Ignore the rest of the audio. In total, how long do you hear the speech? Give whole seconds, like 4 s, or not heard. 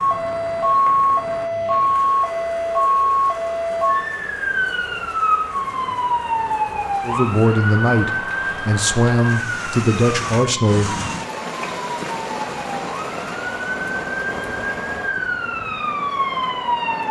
4 s.